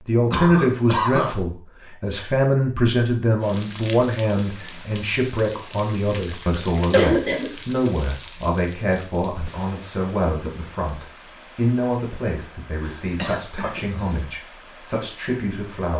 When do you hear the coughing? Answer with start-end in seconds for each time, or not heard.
0.3-1.3, 6.9-7.5, 12.8-14.2.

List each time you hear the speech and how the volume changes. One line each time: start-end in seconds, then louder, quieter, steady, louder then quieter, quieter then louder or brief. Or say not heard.
0.0-15.9 quieter.